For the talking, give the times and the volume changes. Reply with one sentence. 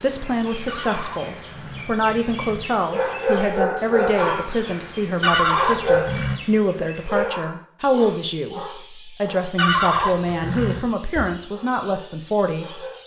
The talking can be heard from 0.0 to 12.8 s, at a steady volume.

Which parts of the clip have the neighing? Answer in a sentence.
The neighing can be heard from 0.7 to 2.7 s, from 5.2 to 6.4 s and from 9.6 to 10.9 s.